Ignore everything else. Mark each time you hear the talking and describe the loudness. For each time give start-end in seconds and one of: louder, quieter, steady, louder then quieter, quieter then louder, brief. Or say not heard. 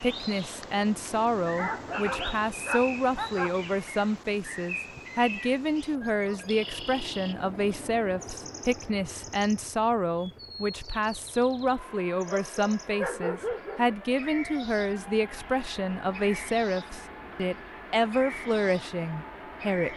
0.0-19.9 steady.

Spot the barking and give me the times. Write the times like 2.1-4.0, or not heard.
1.6-3.5, 12.2-13.9.